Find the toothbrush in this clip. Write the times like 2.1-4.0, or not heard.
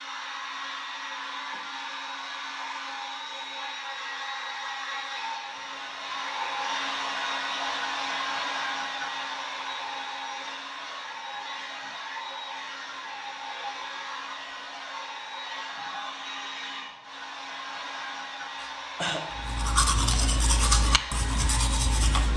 19.3-22.3.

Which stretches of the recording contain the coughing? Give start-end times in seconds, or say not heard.
18.6-19.4.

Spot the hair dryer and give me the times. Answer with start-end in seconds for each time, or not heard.
0.0-22.3.